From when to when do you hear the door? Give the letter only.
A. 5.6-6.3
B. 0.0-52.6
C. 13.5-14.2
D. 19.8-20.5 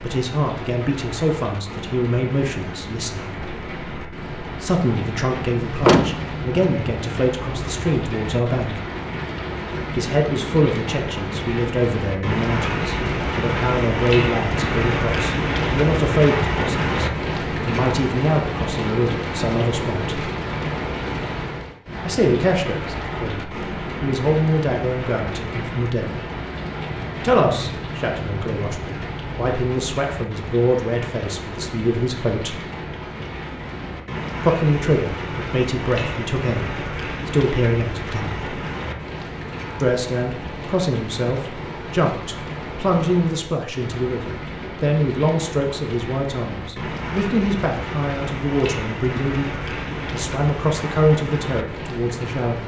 A.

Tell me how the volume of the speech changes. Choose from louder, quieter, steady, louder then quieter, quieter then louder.
steady.